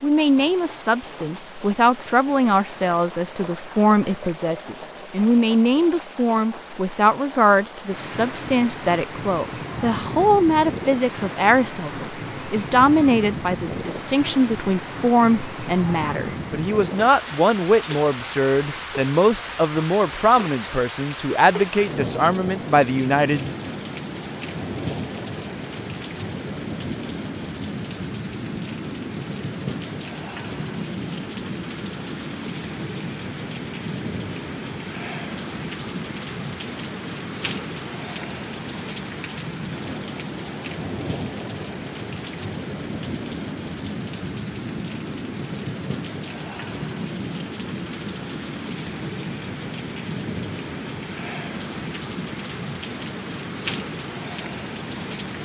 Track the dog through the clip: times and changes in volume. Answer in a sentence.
You can't hear the dog here.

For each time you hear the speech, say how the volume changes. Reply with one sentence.
You can hear the speech from 0.0 to 23.6 s, at a steady volume.